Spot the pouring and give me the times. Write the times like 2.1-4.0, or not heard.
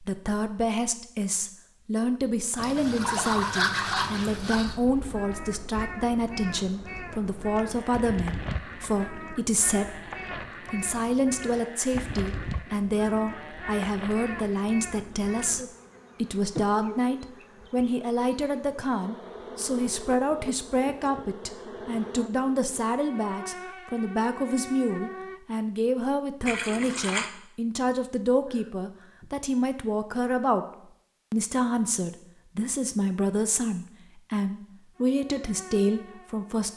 2.5-4.8, 26.4-27.3.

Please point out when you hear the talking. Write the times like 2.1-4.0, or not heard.
0.0-30.6, 31.3-36.7.